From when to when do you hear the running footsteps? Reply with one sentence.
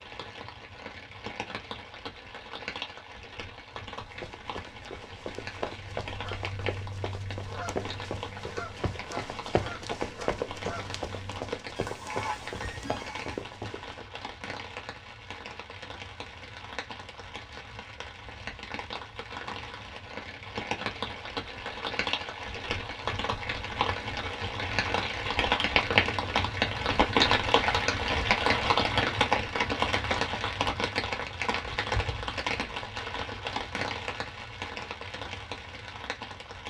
You can hear the running footsteps from 4.0 to 14.1 s.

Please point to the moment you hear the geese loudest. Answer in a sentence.
The volume of the geese peaks at 12 seconds.